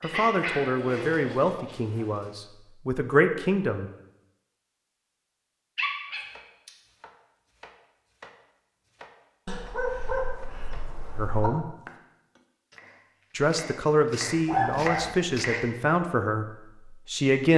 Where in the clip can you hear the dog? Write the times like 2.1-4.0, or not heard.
0.0-2.1, 5.8-6.7, 9.4-11.5, 14.4-15.2.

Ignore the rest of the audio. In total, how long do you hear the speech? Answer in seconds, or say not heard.
8 s.